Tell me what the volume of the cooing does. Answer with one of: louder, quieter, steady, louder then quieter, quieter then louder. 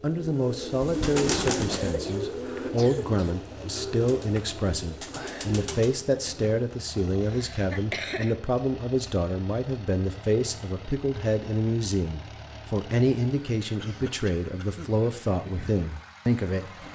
quieter.